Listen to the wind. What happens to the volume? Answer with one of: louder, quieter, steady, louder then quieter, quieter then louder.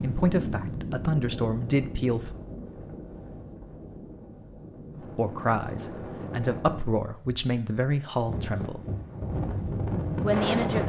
quieter then louder.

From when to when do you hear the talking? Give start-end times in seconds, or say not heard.
0.0-2.4, 5.0-8.8, 10.2-10.8.